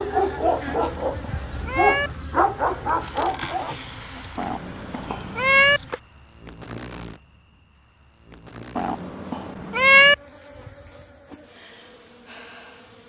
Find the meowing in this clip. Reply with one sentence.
The meowing can be heard from 0.7 to 2.1 s, from 4.3 to 5.8 s and from 8.8 to 10.2 s.